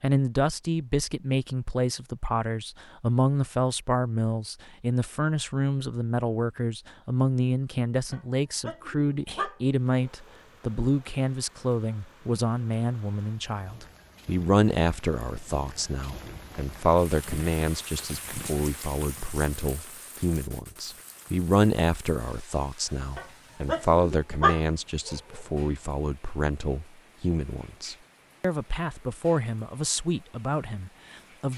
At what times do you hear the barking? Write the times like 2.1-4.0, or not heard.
8.1-10.3, 23.1-25.4.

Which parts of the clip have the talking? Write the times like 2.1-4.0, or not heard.
0.0-31.5.